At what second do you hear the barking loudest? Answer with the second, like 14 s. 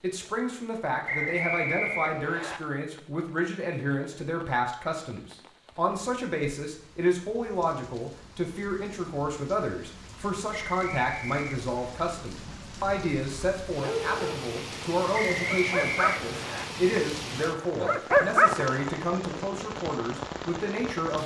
18 s.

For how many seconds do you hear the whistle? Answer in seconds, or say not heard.
4 s.